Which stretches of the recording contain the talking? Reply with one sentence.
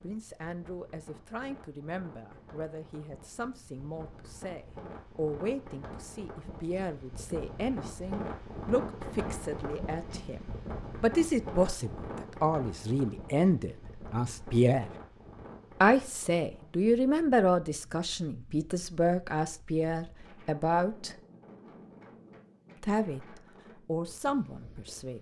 The talking can be heard from 0.0 to 14.9 s, from 15.8 to 21.1 s and from 22.8 to 25.1 s.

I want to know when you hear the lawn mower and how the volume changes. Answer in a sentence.
You can't hear the lawn mower here.